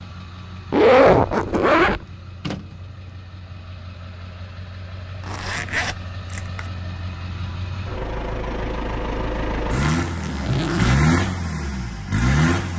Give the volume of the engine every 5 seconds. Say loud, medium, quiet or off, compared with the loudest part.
quiet, medium, loud.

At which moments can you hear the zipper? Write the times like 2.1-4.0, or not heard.
0.7-2.0, 5.2-6.7, 9.8-11.0.